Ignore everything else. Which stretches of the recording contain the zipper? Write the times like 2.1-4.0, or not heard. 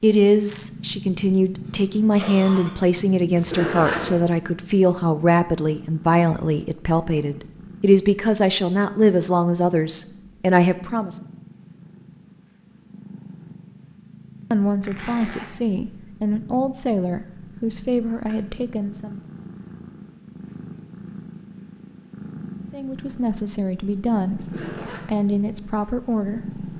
3.4-4.2, 14.8-15.5, 24.4-25.1.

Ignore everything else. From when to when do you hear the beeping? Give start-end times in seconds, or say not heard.
not heard.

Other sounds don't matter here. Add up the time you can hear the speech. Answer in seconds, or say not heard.
20 s.